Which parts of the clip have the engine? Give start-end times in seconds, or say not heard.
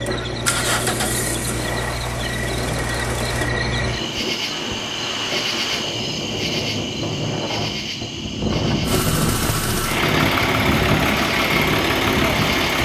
0.1-3.5, 8.8-12.8.